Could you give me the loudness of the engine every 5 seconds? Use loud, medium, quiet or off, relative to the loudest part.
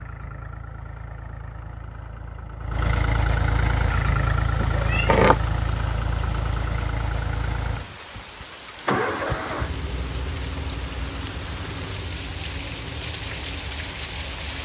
loud, loud, medium.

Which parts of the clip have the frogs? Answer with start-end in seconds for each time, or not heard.
not heard.